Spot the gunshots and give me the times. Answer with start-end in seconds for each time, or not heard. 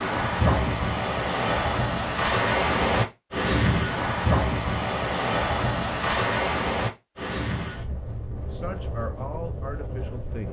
not heard.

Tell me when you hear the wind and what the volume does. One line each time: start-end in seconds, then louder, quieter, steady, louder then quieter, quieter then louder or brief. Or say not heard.
0.0-10.4 quieter.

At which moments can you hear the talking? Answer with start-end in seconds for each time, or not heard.
8.5-10.4.